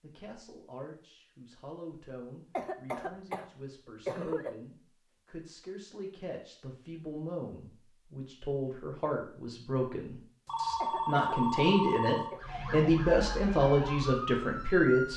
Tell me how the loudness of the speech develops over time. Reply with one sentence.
The volume of the speech goes up.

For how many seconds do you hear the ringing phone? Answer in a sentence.
You can hear the ringing phone for 2 seconds altogether.